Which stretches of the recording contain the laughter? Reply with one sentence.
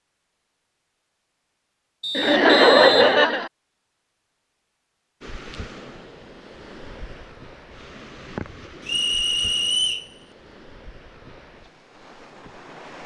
The laughter can be heard from 2.1 to 3.5 s.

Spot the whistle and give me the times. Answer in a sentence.
You can hear the whistle from 2.0 to 3.2 s and from 8.8 to 10.1 s.